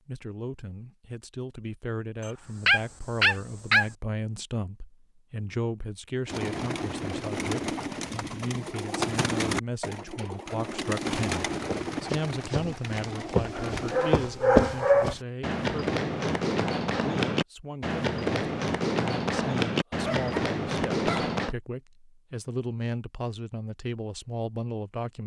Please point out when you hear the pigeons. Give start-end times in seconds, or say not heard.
6.2-14.2.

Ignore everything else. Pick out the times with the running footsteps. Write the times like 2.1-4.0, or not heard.
11.6-21.6.